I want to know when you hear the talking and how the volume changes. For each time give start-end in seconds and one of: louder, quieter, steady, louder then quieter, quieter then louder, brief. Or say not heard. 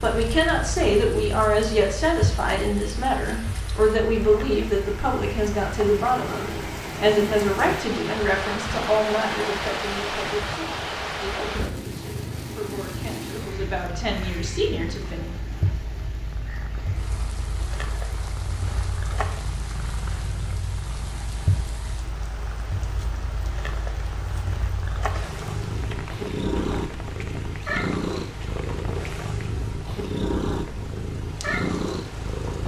0.0-15.3 quieter.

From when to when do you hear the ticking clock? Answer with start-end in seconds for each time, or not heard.
not heard.